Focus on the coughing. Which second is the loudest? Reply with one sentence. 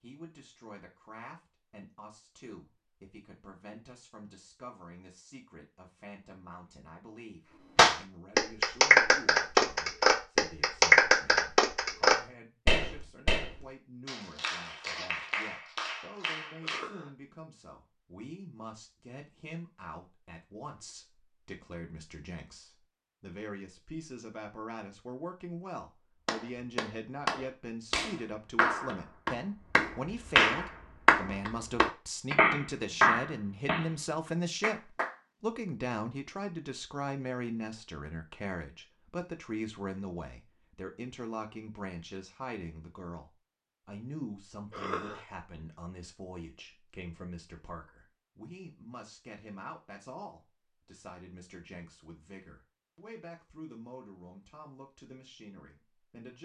The volume of the coughing peaks at 45 seconds.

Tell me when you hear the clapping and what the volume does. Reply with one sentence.
The clapping can be heard from 7.8 to 16.9 s, getting quieter; and from 26.2 to 35.1 s, getting louder then quieter.